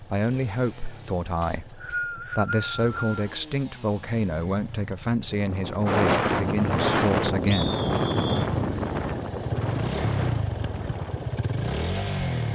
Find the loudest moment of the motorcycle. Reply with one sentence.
The loudest moment of the motorcycle is at 10 seconds.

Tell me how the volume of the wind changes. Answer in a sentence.
The volume of the wind goes down.